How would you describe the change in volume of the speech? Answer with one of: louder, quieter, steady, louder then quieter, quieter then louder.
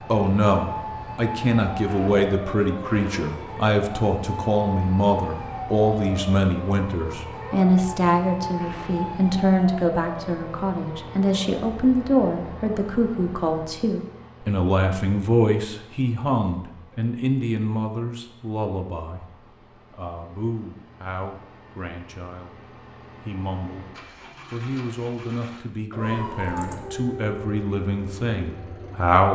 quieter.